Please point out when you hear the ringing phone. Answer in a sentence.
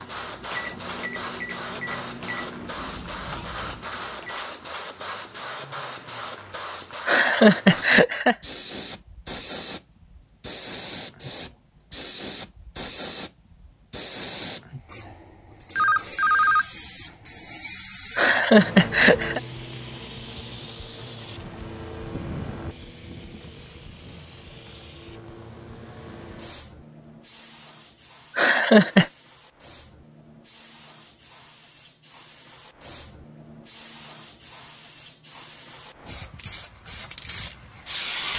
You can hear the ringing phone from 15.8 to 16.7 s.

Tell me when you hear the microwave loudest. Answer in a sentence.
The volume of the microwave peaks at 1 second.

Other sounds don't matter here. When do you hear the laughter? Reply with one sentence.
You can hear the laughter from 7.0 to 8.3 s, from 18.1 to 19.4 s and from 28.4 to 29.1 s.